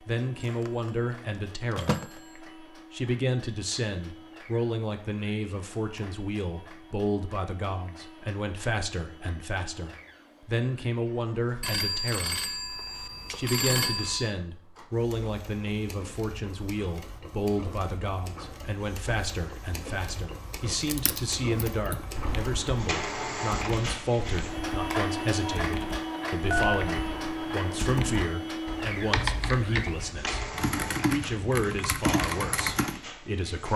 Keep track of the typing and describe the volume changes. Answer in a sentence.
The volume of the typing goes up.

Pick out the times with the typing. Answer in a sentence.
You can hear the typing from 20.9 to 33.0 s.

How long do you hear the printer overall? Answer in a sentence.
The printer can be heard for 34 seconds in total.